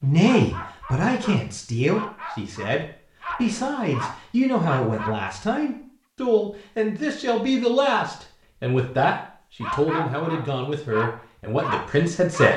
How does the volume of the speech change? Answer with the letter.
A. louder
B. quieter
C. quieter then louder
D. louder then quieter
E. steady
E.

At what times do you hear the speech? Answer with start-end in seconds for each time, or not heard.
0.0-12.5.